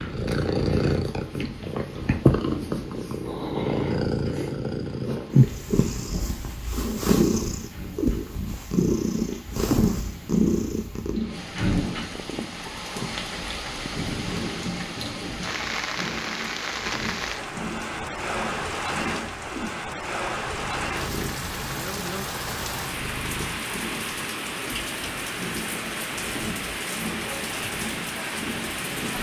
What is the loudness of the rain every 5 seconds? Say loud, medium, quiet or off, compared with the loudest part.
quiet, quiet, loud, loud, loud, loud.